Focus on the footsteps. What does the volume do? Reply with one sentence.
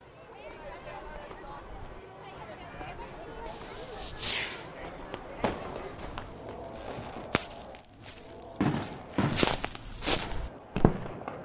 The loudness of the footsteps goes up.